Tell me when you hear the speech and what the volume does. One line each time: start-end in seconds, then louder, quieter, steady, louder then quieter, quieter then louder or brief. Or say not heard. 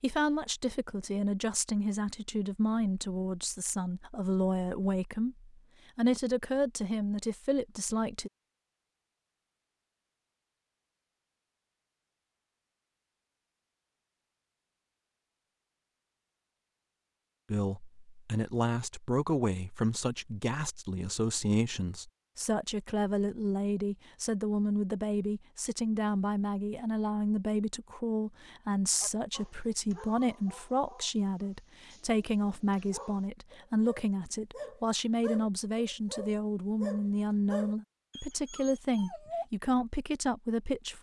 0.0-8.3 steady
17.5-40.9 steady.